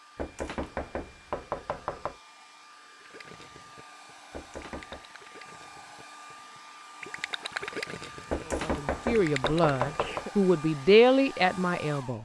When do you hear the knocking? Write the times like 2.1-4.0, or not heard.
0.1-2.1, 4.3-5.2, 8.3-10.2.